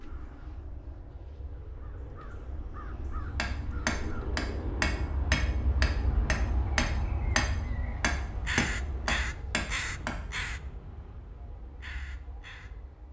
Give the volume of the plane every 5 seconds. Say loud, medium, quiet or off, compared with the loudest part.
loud, loud, quiet.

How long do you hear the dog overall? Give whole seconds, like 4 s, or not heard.
not heard.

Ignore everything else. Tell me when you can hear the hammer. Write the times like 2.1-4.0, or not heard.
3.4-10.2.